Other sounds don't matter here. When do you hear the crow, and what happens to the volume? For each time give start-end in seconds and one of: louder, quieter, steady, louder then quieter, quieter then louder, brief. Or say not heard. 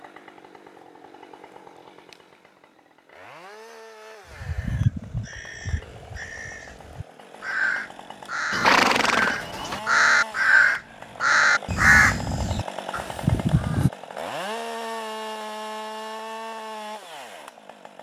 4.3-13.9 louder.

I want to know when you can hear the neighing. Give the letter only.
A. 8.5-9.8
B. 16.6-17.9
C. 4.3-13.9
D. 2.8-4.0
A.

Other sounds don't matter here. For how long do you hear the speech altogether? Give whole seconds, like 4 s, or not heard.
not heard.